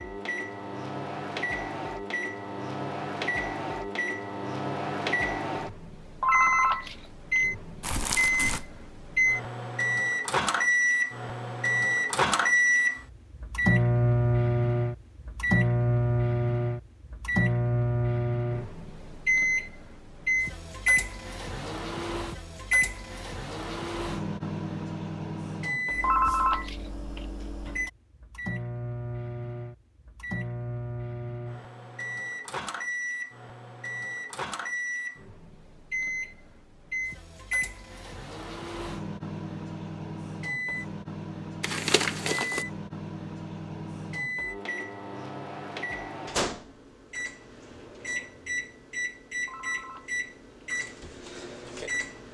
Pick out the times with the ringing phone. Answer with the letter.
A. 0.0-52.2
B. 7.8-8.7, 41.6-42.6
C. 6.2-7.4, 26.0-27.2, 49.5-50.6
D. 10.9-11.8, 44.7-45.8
C.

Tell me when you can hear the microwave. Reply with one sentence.
You can hear the microwave from 0.0 to 52.2 s.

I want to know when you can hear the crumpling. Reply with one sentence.
You can hear the crumpling from 7.8 to 8.7 s and from 41.6 to 42.6 s.